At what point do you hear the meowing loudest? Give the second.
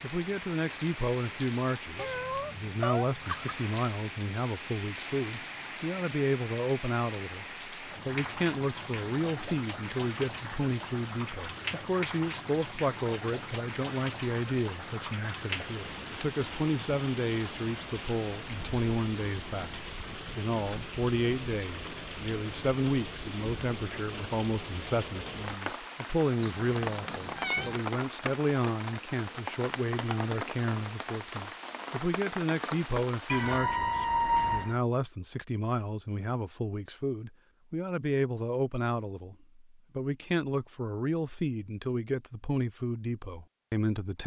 34 s.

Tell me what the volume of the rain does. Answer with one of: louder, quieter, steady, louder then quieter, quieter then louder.
steady.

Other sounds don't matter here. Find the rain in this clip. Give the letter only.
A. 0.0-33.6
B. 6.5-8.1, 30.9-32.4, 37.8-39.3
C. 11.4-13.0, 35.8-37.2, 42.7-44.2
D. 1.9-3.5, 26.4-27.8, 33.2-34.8
A.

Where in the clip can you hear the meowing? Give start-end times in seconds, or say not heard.
1.9-3.5, 26.4-27.8, 33.2-34.8.